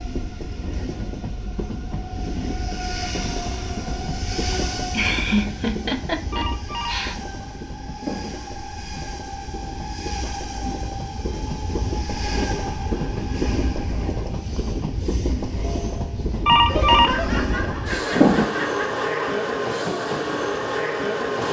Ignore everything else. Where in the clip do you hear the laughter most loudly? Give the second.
5 s.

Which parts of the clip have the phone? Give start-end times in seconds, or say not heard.
6.3-8.3, 16.4-18.4.